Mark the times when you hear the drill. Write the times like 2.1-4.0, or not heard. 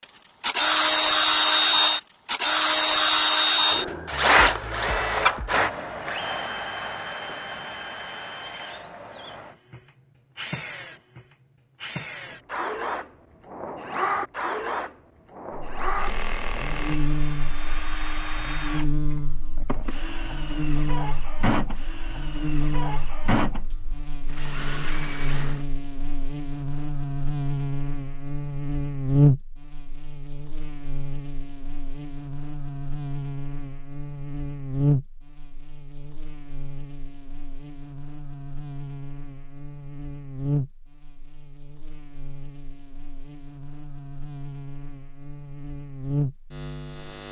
0.5-25.6.